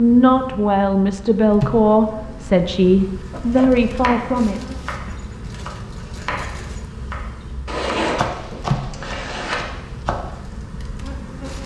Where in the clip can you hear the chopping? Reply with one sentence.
You can hear the chopping from 3.3 to 10.4 s.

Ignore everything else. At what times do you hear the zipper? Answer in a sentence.
You can hear the zipper from 7.7 to 9.6 s.